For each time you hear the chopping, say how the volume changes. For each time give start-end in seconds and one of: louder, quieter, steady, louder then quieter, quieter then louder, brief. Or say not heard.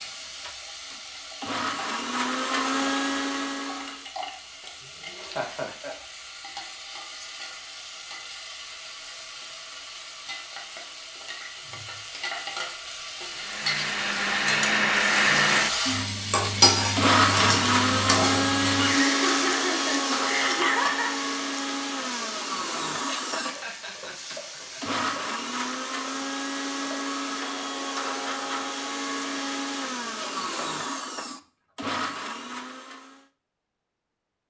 not heard.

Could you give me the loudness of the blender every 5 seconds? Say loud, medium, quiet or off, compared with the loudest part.
medium, off, loud, loud, medium, medium, medium.